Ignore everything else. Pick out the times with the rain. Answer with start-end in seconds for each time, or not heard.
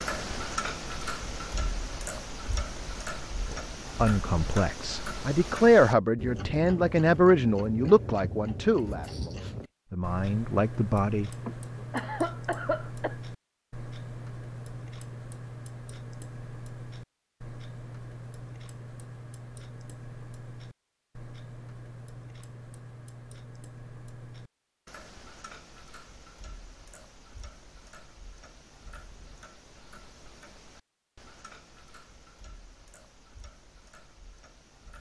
not heard.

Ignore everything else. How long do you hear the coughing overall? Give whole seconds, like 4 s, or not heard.
2 s.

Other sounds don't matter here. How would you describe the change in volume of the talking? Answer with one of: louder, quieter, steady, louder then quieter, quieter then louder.
louder then quieter.